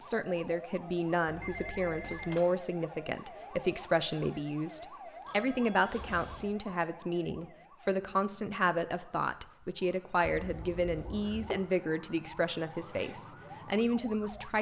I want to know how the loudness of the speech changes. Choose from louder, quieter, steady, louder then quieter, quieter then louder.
steady.